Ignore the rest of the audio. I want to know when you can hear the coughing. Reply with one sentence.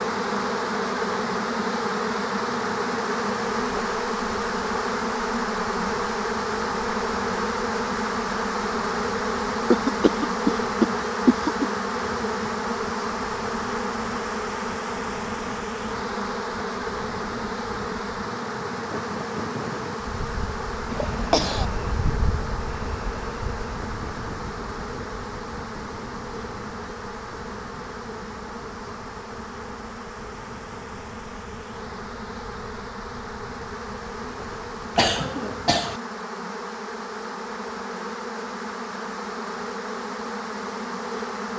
You can hear the coughing from 9.7 to 11.7 s, from 20.9 to 21.6 s and from 35.0 to 36.0 s.